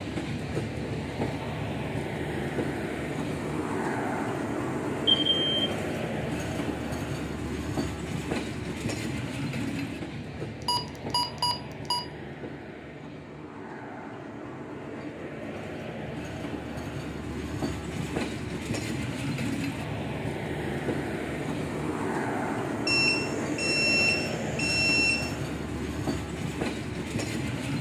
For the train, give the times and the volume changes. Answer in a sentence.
The train can be heard from 0.0 to 27.7 s, getting quieter then louder.